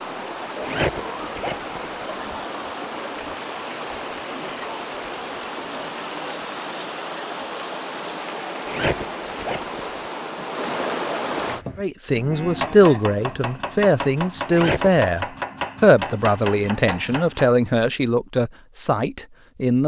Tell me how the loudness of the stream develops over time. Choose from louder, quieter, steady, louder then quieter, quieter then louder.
steady.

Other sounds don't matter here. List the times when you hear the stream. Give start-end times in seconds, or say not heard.
0.0-11.7.